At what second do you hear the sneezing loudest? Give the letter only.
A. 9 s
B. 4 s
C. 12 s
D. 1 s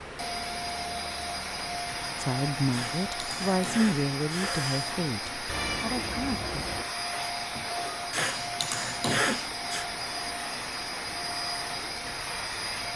A.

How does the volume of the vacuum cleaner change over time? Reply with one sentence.
The loudness of the vacuum cleaner stays about the same.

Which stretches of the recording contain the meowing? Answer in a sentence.
You can hear the meowing from 5.5 to 6.8 s.